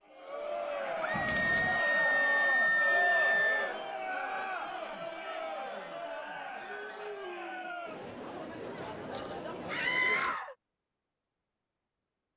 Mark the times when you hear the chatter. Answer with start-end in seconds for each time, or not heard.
0.0-10.4.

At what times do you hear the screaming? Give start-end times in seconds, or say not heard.
1.0-3.6, 9.7-10.6.